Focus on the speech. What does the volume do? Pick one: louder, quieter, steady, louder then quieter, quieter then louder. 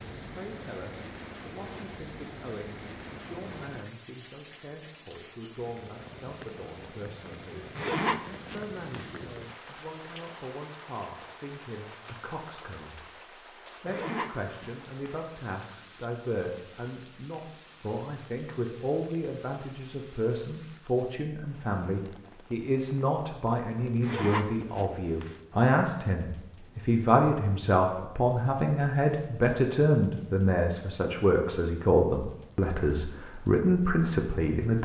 louder.